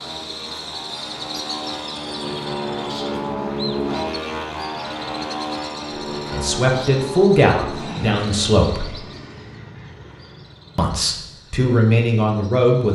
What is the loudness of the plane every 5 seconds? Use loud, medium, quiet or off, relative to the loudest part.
loud, loud, quiet.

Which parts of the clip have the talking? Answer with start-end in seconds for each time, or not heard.
6.3-8.9, 10.8-12.8.